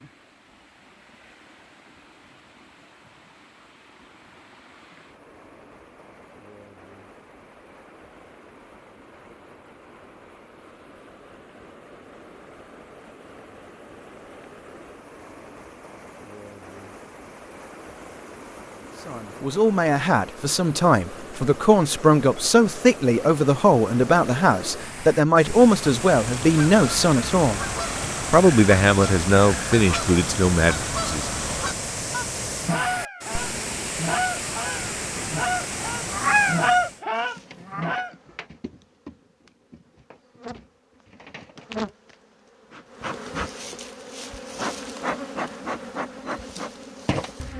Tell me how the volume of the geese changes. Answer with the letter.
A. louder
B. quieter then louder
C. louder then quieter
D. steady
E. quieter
A.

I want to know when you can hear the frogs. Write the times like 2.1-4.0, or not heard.
not heard.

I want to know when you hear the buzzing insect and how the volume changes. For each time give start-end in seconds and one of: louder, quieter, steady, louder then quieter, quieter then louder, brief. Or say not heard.
37.1-47.5 louder.